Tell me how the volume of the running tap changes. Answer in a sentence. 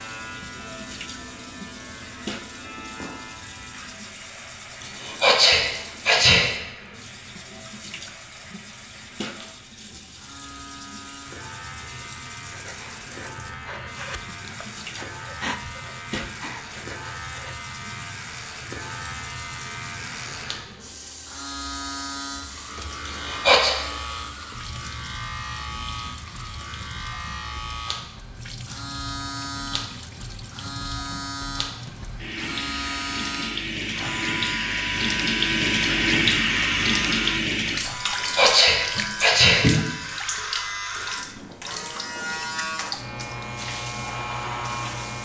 The volume of the running tap goes up.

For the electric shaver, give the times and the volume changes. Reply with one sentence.
You can hear the electric shaver from 0.0 to 45.2 s, getting louder.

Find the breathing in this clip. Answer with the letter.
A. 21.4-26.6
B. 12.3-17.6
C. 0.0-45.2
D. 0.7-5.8
B.